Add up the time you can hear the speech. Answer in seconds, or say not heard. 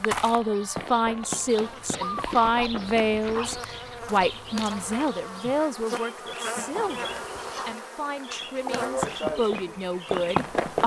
11 s.